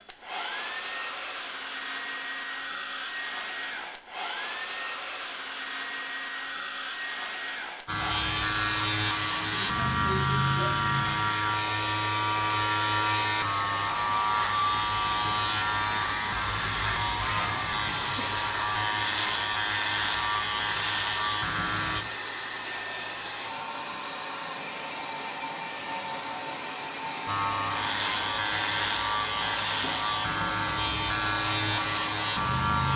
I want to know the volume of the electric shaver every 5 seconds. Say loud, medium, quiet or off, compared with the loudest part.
off, loud, loud, loud, loud, loud, loud.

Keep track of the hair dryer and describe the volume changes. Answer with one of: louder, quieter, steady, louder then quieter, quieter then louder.
steady.